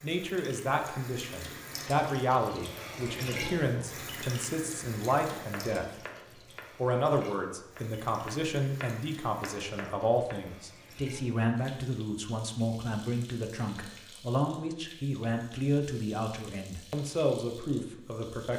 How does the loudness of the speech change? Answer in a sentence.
The volume of the speech stays about the same.